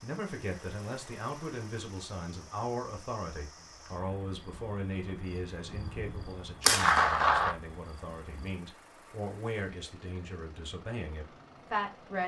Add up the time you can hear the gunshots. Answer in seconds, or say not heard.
2 s.